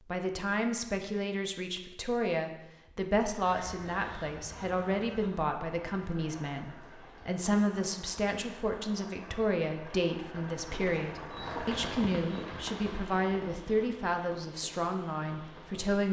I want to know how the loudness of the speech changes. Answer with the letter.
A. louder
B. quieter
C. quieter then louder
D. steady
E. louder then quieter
D.